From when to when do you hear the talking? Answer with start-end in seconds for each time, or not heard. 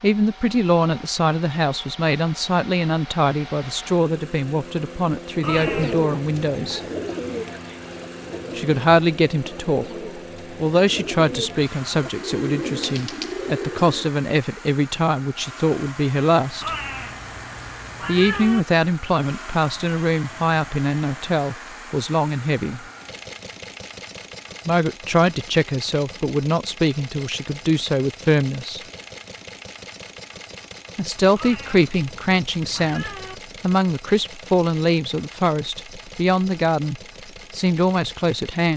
0.0-6.8, 8.6-16.7, 18.1-22.8, 24.6-28.8, 30.9-38.7.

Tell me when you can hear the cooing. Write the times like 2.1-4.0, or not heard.
5.5-14.1.